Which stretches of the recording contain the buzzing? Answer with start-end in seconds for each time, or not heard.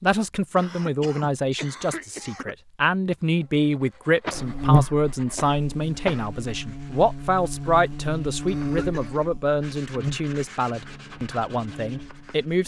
4.3-12.5.